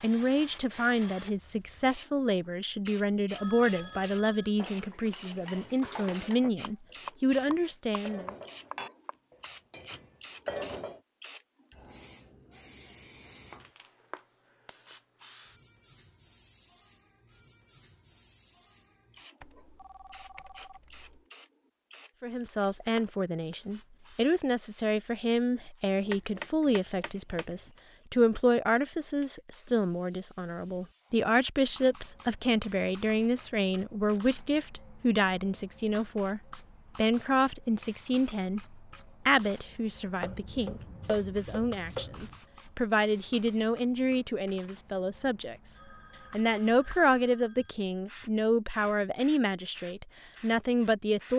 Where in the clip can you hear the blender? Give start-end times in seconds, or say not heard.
not heard.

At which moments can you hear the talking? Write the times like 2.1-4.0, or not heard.
0.0-8.3, 22.2-45.5, 46.3-51.3.